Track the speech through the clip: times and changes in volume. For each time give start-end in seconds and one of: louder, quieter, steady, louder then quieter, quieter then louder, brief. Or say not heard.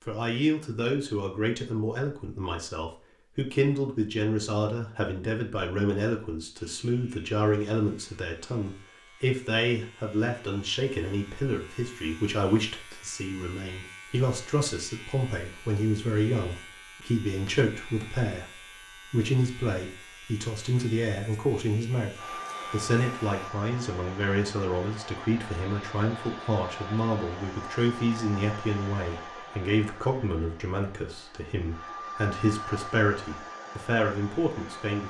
0.0-35.0 steady.